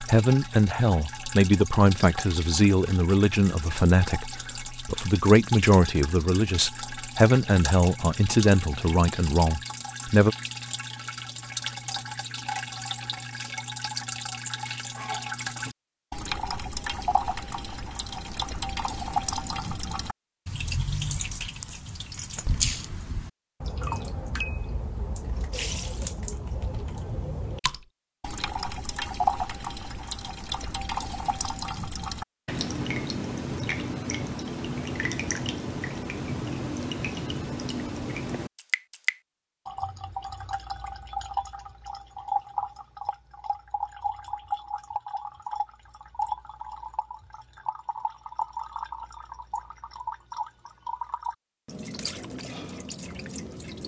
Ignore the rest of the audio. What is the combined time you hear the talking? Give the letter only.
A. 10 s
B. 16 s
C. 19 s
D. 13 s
A.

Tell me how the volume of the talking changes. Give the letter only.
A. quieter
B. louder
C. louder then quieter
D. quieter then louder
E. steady
E.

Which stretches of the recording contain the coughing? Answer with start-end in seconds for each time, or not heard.
not heard.